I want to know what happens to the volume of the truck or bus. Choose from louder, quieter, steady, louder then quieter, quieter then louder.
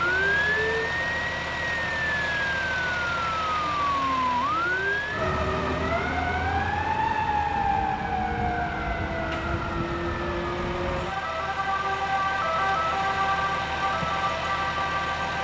quieter then louder.